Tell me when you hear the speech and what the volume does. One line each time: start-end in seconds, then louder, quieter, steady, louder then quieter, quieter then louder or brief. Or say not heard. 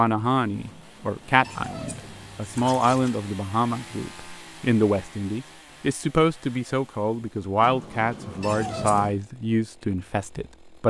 0.0-10.8 steady.